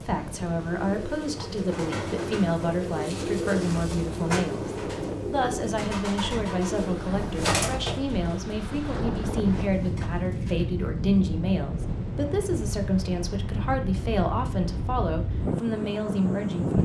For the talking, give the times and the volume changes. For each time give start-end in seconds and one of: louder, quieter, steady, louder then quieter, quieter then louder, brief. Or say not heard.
0.1-16.8 steady.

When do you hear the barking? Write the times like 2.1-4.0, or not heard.
not heard.